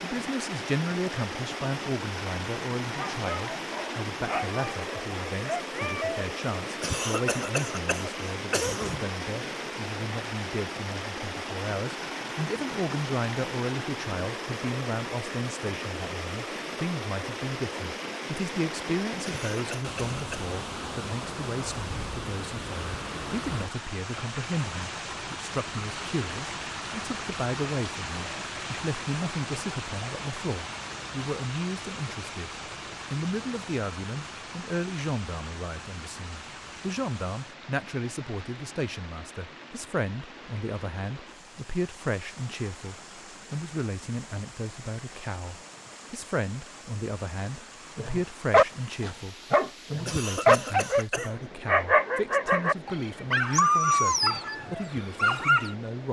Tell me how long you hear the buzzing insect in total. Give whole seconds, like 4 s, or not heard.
not heard.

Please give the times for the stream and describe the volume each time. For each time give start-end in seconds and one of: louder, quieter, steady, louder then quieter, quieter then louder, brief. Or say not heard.
0.0-56.0 quieter.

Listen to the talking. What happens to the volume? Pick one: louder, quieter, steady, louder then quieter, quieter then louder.
steady.